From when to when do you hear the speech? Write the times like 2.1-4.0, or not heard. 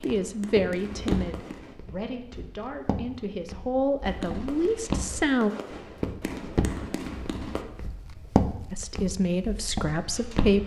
0.0-5.5, 8.7-10.6.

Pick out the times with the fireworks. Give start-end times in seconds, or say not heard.
0.0-1.8, 4.0-7.7.